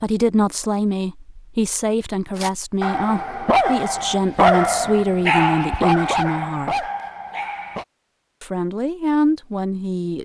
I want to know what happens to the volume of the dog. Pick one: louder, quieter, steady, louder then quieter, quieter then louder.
quieter.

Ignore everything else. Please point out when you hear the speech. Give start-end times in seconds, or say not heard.
0.0-6.8, 8.4-10.2.